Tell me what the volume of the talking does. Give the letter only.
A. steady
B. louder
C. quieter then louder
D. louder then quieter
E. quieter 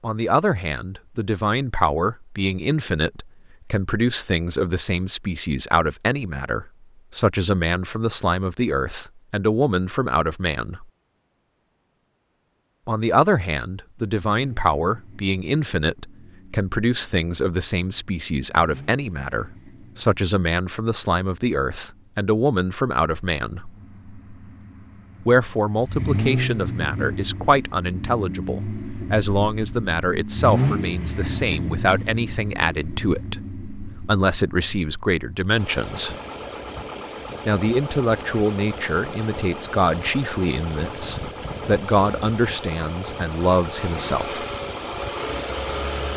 A.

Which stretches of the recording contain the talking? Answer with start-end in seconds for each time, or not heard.
0.0-10.8, 12.8-23.7, 25.2-36.1, 37.5-44.4.